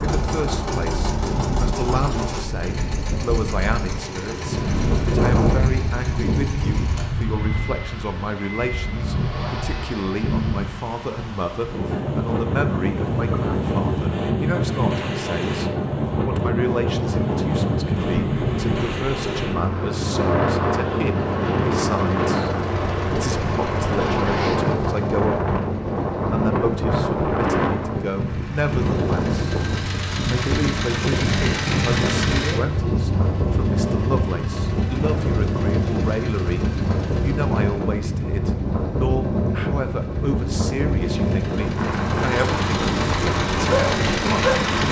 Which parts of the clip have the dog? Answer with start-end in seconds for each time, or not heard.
43.6-44.6.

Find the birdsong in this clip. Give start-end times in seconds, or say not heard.
not heard.